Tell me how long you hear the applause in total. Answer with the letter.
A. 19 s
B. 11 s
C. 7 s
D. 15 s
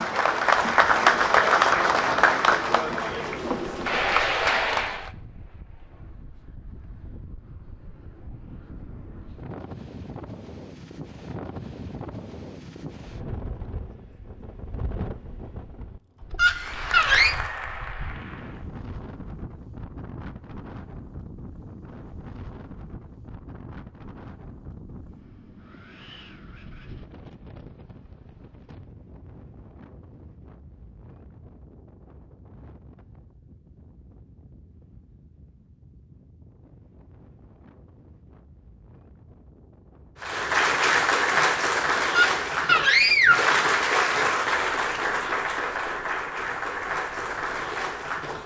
D.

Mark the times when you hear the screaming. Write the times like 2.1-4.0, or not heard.
16.4-17.4, 42.1-43.5.